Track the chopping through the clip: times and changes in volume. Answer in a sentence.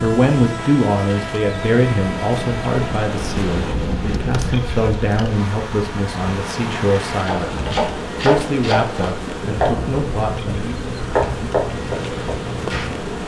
The chopping can be heard from 7.2 to 12.9 s, at a steady volume.